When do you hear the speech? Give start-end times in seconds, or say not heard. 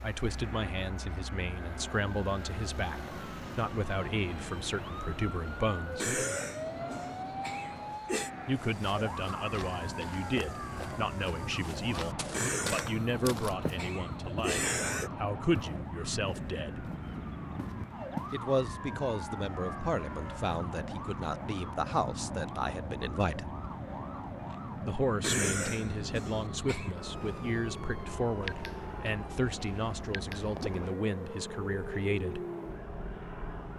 0.0-6.1, 8.4-16.9, 18.3-23.6, 24.8-32.4.